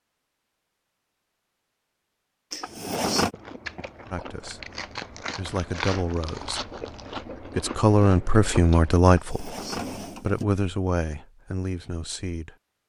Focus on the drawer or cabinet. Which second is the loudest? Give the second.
3 s.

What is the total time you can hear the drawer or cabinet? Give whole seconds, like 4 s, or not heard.
2 s.